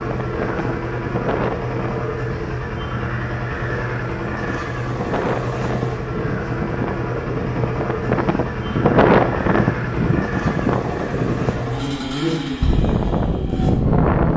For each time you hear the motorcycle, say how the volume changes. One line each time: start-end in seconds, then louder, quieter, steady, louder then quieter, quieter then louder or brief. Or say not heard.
0.0-14.3 steady.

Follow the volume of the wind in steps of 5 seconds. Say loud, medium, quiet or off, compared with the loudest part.
medium, loud, loud.